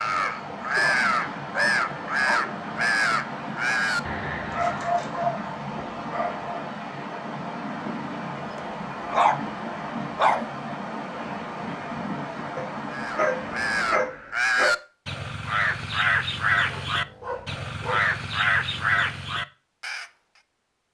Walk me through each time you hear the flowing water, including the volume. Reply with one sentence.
You can hear the flowing water from 0.0 to 14.1 s, at a steady volume.